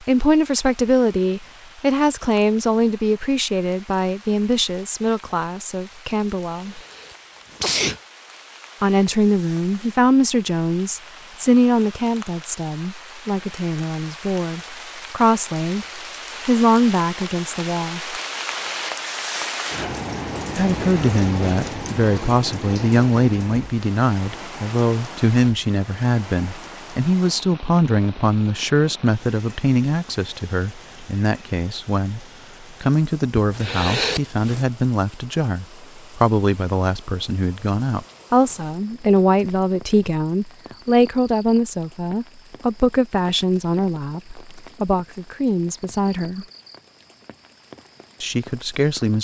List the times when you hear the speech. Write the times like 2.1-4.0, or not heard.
0.1-6.8, 8.8-18.2, 20.6-46.5, 48.2-49.1.